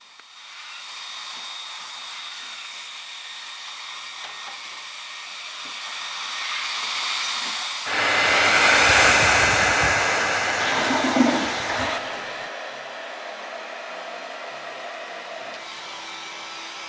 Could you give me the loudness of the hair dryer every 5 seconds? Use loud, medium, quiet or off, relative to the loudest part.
quiet, loud, medium, quiet.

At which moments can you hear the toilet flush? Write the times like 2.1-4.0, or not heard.
10.6-12.5.